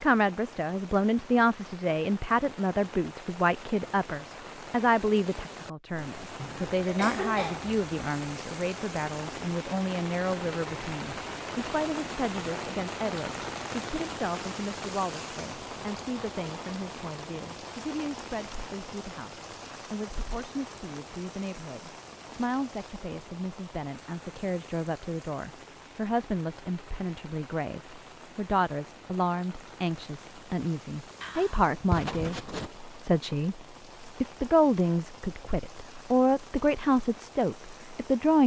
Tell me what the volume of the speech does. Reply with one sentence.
The volume of the speech goes down, then up.